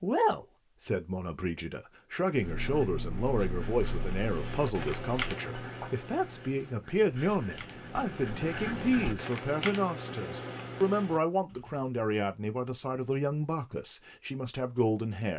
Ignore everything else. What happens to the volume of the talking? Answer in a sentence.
The volume of the talking stays about the same.